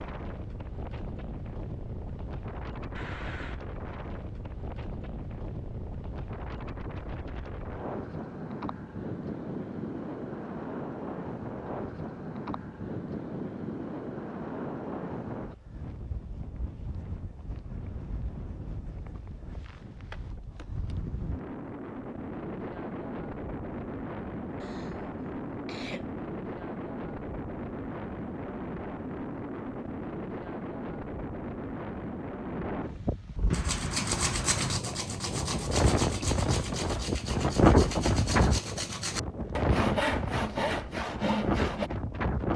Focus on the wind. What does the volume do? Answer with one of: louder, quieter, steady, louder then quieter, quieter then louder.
louder.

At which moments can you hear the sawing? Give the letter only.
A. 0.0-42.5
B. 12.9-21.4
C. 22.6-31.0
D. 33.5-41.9
D.